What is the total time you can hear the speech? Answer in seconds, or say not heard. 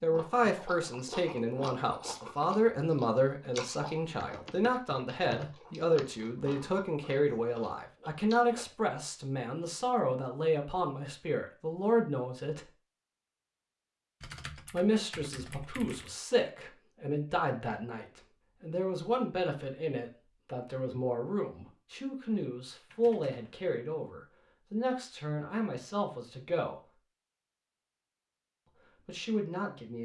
26 s.